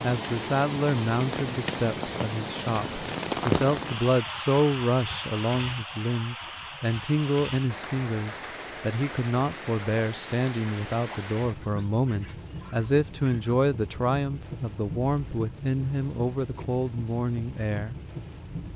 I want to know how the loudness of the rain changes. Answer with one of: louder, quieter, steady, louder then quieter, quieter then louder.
quieter.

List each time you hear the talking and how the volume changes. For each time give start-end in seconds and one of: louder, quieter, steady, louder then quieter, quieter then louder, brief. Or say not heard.
0.0-17.9 steady.